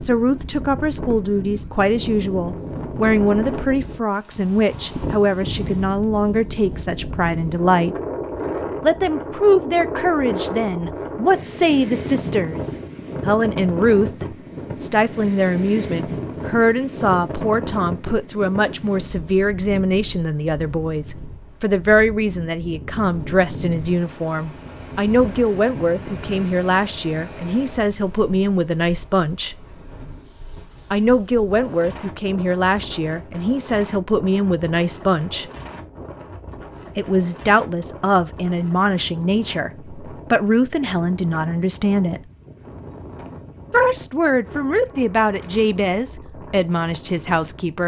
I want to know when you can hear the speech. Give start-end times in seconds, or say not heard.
0.0-8.0, 8.8-29.6, 30.9-35.5, 37.0-42.2, 43.7-47.8.